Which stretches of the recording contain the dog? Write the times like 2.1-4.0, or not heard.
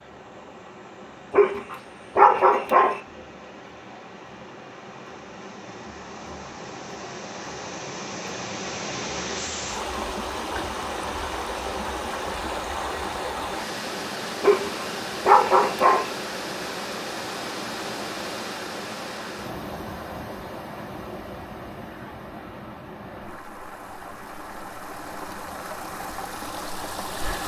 1.3-3.0, 14.4-16.1.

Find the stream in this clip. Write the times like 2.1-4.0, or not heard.
0.0-27.4.